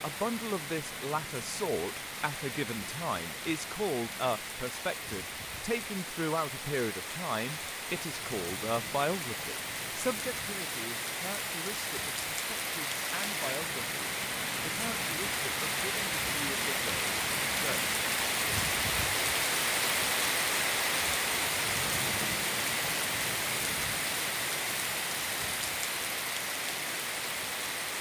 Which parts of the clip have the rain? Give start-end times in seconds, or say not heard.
0.0-27.9.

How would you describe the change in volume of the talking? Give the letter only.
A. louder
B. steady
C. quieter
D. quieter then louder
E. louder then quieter
C.